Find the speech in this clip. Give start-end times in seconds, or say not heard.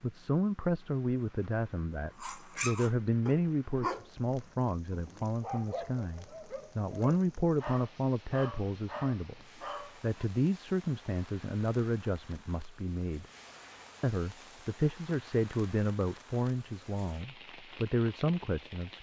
0.0-9.4, 10.0-13.2, 14.0-18.9.